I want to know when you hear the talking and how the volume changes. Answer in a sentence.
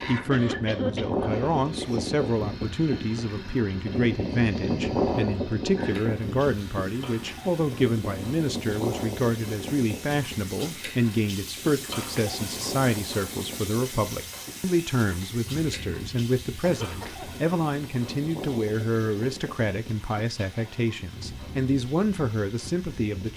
The talking can be heard from 0.1 to 23.3 s, at a steady volume.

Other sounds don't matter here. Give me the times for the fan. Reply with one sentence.
You can hear the fan from 0.0 to 23.3 s.